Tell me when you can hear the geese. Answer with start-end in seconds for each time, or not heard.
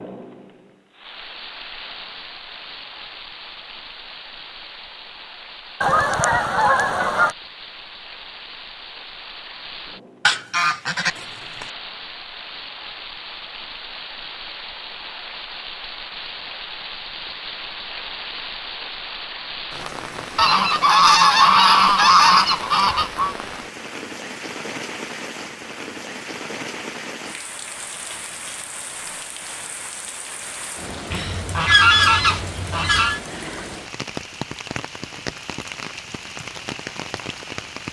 5.8-7.3, 10.2-11.7, 20.4-23.4, 31.1-33.2.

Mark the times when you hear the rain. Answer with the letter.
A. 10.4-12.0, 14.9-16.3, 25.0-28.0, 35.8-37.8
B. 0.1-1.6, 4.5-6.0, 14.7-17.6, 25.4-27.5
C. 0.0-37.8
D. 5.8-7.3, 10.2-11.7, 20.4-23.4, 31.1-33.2
C.